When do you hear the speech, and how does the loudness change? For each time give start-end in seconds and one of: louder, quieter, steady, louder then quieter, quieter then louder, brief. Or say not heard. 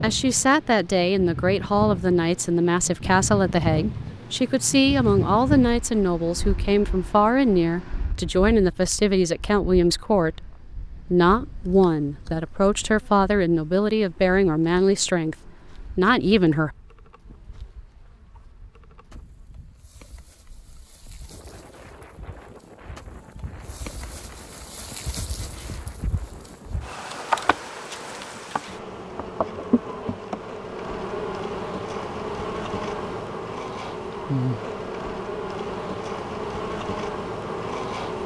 0.0-16.7 steady.